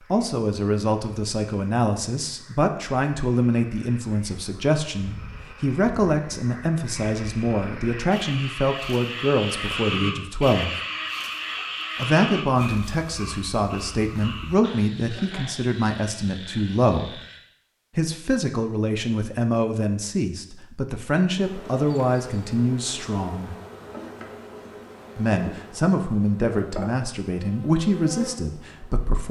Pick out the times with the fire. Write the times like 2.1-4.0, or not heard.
not heard.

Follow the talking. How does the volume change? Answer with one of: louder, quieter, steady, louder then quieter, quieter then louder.
steady.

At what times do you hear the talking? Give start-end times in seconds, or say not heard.
0.1-10.8, 11.9-17.2, 17.9-23.6, 25.1-29.2.